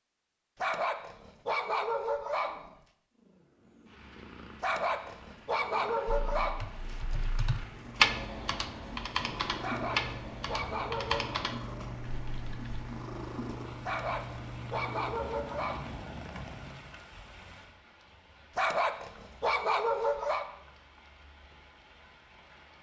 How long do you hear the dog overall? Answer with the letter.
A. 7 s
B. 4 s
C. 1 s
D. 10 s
D.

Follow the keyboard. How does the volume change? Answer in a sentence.
The volume of the keyboard goes up, then down.